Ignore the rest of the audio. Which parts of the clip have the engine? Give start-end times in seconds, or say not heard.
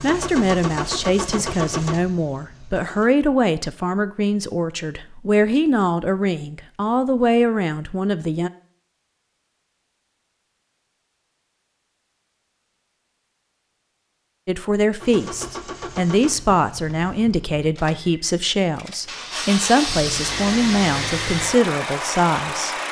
0.0-3.1, 15.0-22.8.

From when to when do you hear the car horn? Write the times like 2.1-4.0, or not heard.
not heard.